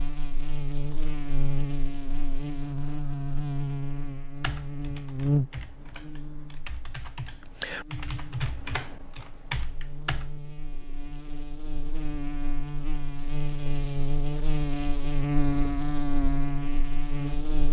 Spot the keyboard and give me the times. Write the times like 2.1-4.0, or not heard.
4.4-10.3.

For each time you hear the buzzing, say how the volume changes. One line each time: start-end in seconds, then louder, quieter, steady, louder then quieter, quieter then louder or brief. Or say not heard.
0.0-17.6 quieter then louder.